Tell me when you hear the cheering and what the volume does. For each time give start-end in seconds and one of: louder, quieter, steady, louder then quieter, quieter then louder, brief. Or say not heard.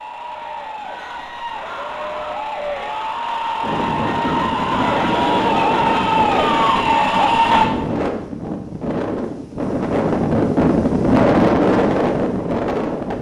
0.0-7.7 louder.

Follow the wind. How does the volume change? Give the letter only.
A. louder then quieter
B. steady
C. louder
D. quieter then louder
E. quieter
C.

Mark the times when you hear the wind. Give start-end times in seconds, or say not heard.
3.6-13.1.